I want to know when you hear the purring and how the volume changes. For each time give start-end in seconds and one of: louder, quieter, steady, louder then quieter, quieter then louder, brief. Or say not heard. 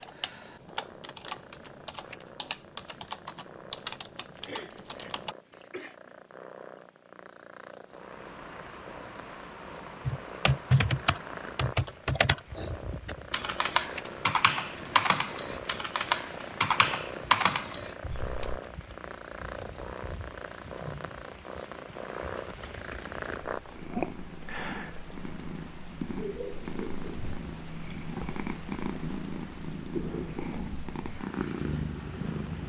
0.0-32.6 louder.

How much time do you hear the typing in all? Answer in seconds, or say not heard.
14 s.